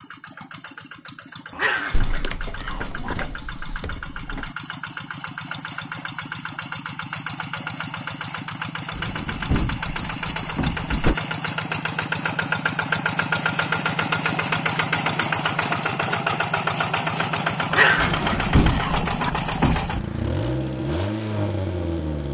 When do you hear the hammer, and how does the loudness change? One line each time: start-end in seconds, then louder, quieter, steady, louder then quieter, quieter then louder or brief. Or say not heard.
not heard.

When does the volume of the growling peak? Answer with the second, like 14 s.
18 s.